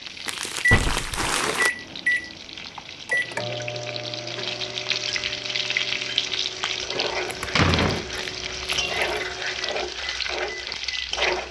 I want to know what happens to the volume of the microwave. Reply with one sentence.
The volume of the microwave goes down.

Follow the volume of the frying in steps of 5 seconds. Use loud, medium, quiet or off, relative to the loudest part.
medium, loud, loud.